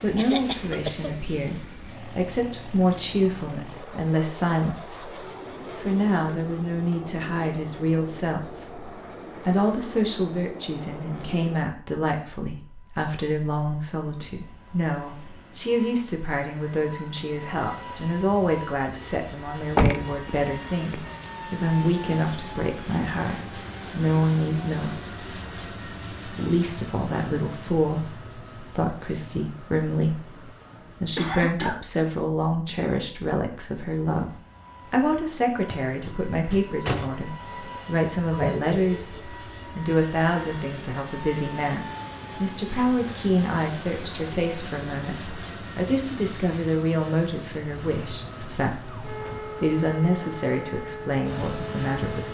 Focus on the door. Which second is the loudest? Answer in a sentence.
The loudest moment of the door is at 20 seconds.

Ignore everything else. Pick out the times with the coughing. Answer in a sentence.
You can hear the coughing from 0.1 to 1.1 s, from 31.1 to 31.9 s and from 38.3 to 39.2 s.